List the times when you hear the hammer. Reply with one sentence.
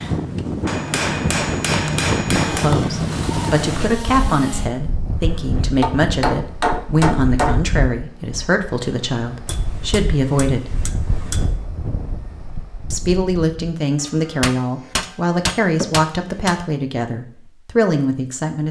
The hammer can be heard from 0.7 to 2.7 s, from 5.8 to 7.7 s, from 9.4 to 11.6 s and from 14.0 to 16.6 s.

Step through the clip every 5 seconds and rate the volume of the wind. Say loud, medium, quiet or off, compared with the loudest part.
loud, medium, medium, off.